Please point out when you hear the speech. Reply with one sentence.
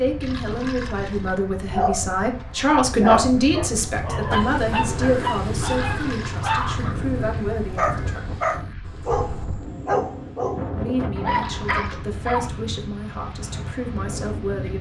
You can hear the speech from 0.0 to 8.2 s and from 10.8 to 14.7 s.